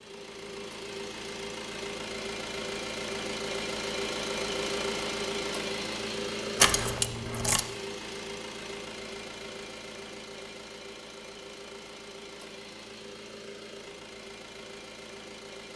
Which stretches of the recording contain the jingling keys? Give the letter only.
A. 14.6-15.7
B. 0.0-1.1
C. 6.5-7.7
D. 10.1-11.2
C.